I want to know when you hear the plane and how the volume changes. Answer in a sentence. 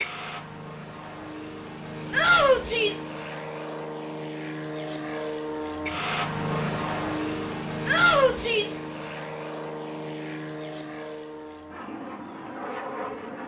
The plane can be heard from 0.0 to 13.4 s, getting louder then quieter.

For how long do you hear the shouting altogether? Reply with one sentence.
You can hear the shouting for 2 seconds altogether.